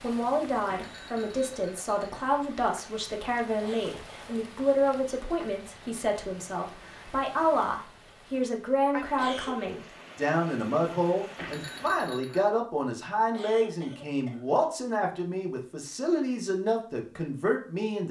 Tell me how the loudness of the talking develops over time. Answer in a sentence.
The loudness of the talking stays about the same.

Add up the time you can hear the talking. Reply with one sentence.
You can hear the talking for 18 seconds altogether.